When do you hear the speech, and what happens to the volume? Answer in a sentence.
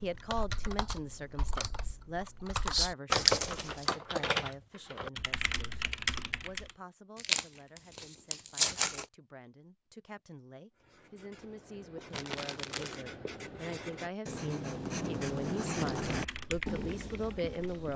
You can hear the speech from 0.0 to 17.9 s, getting quieter then louder.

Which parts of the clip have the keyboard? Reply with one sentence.
You can hear the keyboard from 0.0 to 6.7 s and from 15.9 to 17.9 s.